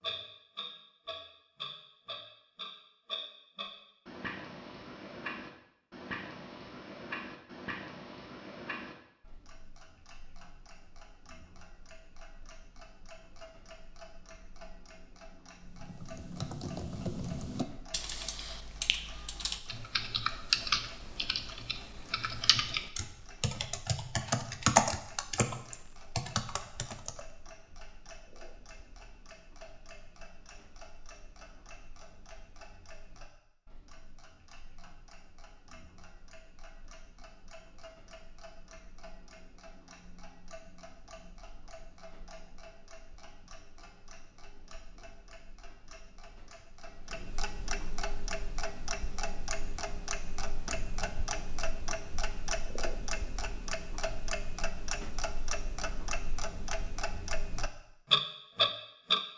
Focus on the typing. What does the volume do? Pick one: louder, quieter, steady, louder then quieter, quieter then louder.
louder.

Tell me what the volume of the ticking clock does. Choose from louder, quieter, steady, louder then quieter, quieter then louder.
quieter then louder.